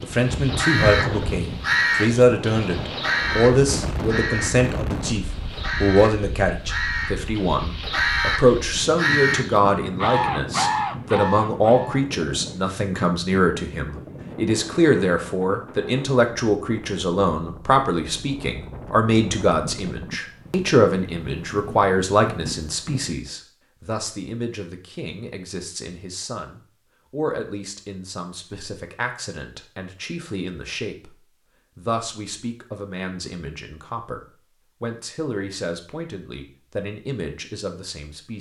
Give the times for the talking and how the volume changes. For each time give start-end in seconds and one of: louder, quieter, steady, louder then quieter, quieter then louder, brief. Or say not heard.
0.0-38.3 quieter.